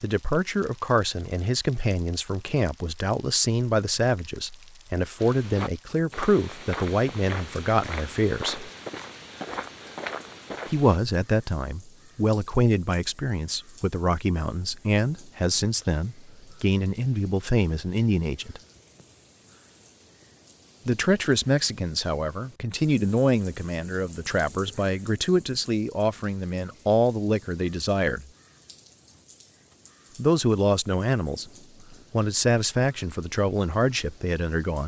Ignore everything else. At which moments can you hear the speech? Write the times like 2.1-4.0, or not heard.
0.0-8.7, 10.7-18.6, 20.9-28.2, 30.1-31.4, 32.1-34.8.